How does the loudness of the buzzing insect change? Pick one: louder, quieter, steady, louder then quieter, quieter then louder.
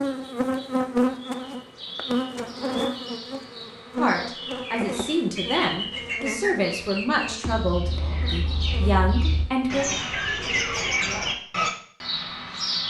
quieter.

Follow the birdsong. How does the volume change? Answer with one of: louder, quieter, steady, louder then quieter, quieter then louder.
louder.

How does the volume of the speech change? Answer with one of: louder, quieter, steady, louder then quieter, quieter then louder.
steady.